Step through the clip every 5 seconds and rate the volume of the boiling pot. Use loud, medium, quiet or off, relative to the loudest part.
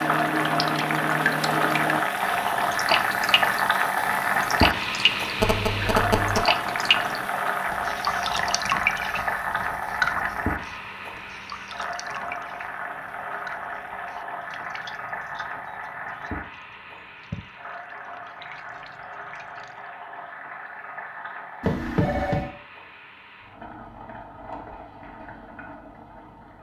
loud, loud, medium, quiet, quiet, quiet.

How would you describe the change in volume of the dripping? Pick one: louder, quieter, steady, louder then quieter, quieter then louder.
quieter.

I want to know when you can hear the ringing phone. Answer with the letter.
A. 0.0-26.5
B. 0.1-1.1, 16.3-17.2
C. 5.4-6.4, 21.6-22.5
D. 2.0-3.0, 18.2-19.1
C.